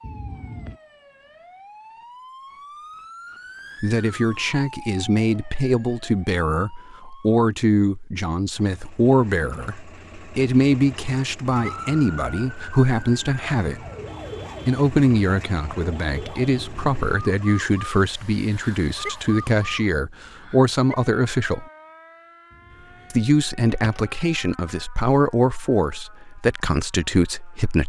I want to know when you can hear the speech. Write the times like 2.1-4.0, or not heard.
3.8-13.8, 14.7-21.6, 23.1-27.8.